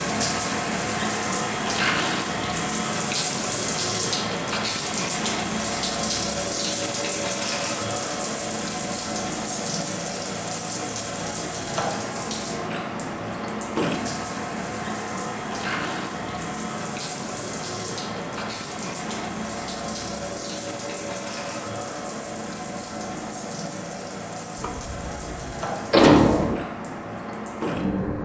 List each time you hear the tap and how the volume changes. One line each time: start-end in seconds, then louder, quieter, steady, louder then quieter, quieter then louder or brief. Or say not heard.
0.0-28.2 quieter.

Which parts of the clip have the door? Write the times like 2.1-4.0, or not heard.
24.6-26.6.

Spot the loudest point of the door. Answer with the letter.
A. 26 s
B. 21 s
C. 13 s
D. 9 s
A.